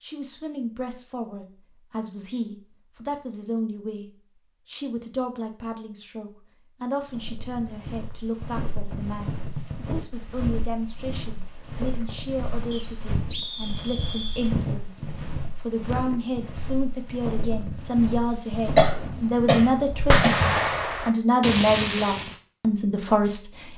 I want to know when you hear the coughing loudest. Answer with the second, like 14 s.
19 s.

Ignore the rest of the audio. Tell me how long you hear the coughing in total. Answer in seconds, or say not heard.
2 s.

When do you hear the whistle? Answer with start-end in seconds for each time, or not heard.
12.7-14.5.